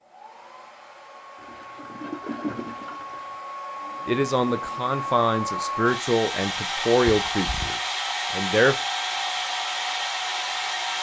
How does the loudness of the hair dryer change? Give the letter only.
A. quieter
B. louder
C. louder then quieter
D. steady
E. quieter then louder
B.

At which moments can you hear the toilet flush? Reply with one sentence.
You can hear the toilet flush from 1.4 to 3.4 s and from 7.1 to 7.7 s.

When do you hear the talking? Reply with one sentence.
You can hear the talking from 4.0 to 8.8 s.